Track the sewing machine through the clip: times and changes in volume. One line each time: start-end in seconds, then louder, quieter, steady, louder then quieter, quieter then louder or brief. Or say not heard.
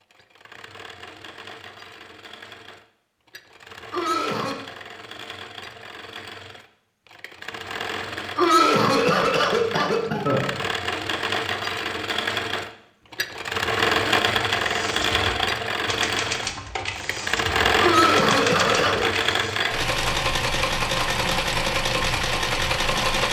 0.0-23.2 louder.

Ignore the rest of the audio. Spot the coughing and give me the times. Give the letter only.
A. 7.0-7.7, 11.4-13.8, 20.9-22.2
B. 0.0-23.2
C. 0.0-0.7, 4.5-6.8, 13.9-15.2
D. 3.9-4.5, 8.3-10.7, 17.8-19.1
D.